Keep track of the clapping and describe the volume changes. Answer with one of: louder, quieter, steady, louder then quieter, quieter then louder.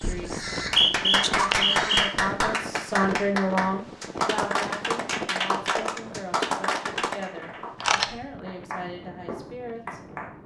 quieter.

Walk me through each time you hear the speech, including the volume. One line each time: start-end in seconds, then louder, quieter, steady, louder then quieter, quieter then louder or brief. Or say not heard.
0.0-10.0 louder then quieter.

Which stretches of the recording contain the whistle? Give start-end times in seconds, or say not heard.
0.3-2.1.